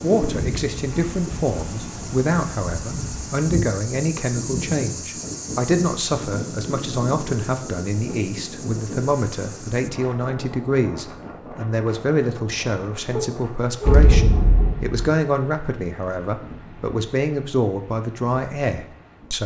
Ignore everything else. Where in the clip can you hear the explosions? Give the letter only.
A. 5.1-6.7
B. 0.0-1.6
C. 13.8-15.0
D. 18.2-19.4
C.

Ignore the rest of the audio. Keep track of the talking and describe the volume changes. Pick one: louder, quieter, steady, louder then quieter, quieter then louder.
steady.